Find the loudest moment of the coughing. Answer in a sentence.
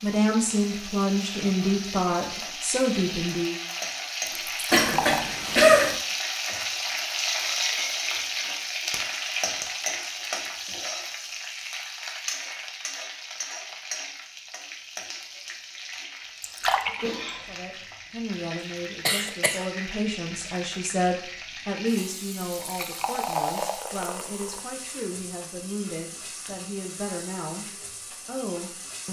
The loudest moment of the coughing is at 6 seconds.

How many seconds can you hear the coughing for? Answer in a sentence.
The coughing can be heard for 2 seconds in total.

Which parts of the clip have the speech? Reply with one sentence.
The speech can be heard from 0.0 to 3.5 s and from 17.4 to 29.0 s.